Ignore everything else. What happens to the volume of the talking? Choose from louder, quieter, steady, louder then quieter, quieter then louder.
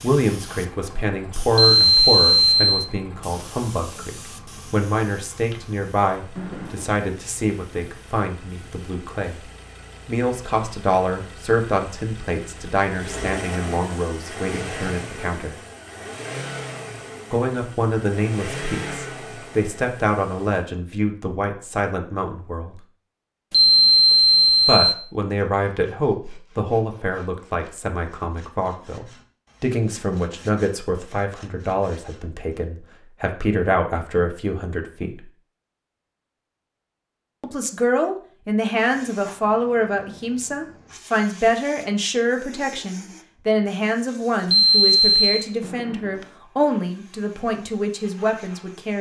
steady.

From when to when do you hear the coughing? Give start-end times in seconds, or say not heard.
6.3-7.0, 45.6-46.4.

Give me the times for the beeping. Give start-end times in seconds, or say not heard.
1.8-2.9, 23.5-24.9, 44.5-45.5.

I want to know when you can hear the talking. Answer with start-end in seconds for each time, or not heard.
0.0-9.4, 10.1-15.6, 17.3-22.8, 24.6-35.2, 37.4-48.9.